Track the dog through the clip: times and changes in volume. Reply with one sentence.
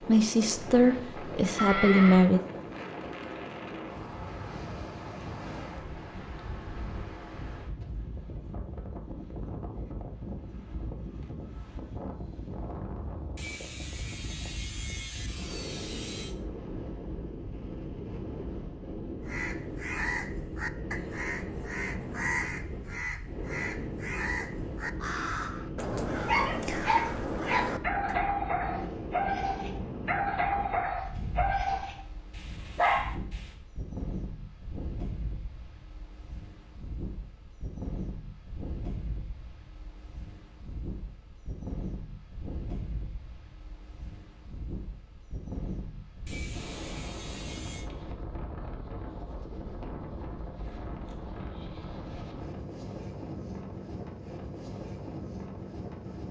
You can hear the dog from 26.1 to 33.5 s, at a steady volume.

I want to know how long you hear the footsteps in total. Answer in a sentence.
You can't hear the footsteps here.